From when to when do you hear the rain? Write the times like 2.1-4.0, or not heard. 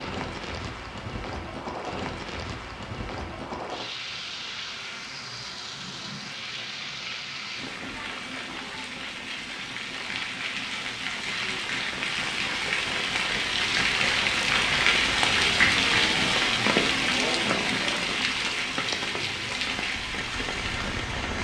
0.0-21.4.